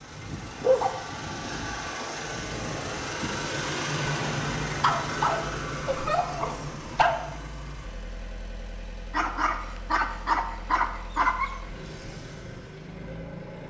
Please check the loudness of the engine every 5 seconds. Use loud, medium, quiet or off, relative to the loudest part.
loud, medium, medium.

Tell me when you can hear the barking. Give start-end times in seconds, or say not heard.
0.6-1.0, 4.8-7.2, 9.1-11.5.